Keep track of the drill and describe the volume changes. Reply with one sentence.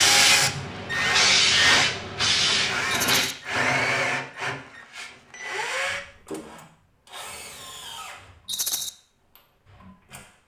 The loudness of the drill goes down.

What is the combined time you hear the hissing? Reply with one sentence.
You can hear the hissing for 3 seconds altogether.